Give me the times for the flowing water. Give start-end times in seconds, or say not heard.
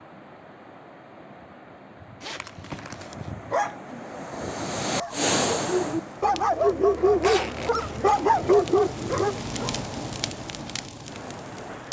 0.0-11.8.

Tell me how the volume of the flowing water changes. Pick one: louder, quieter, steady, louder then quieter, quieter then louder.
louder then quieter.